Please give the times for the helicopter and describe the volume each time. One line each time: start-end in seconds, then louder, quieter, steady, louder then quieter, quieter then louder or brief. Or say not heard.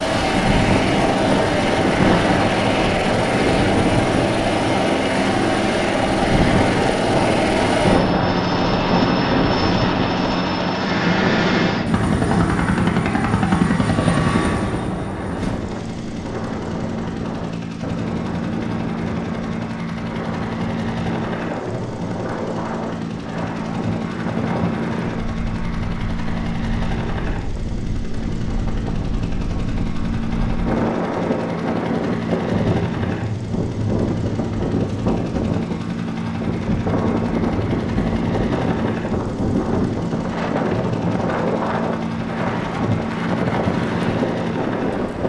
0.0-45.2 quieter.